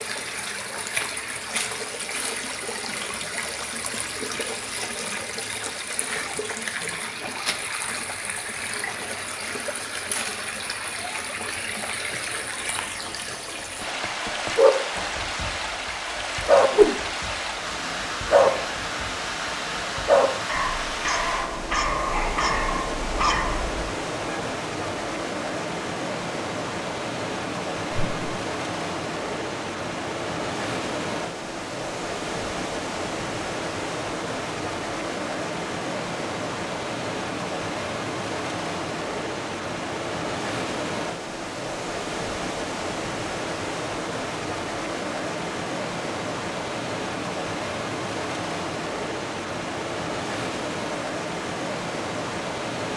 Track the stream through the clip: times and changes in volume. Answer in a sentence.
You can hear the stream from 0.0 to 52.9 s, at a steady volume.